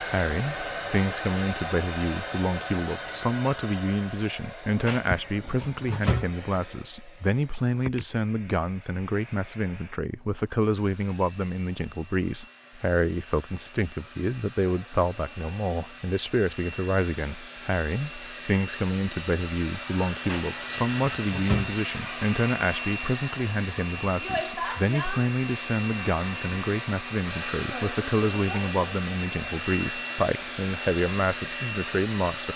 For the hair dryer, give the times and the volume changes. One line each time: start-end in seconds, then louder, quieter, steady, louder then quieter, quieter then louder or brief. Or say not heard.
0.0-32.5 quieter then louder.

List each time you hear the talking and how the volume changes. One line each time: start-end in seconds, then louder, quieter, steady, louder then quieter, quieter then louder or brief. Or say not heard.
0.0-32.5 steady.